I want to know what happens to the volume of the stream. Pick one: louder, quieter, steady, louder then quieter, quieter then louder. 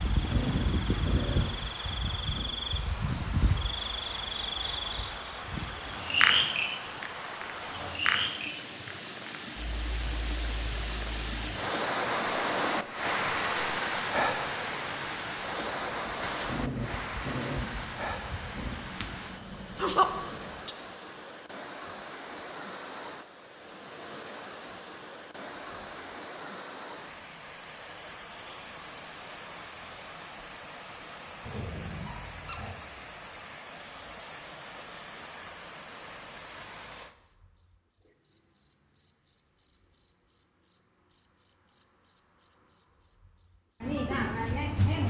louder then quieter.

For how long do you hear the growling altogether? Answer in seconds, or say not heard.
6 s.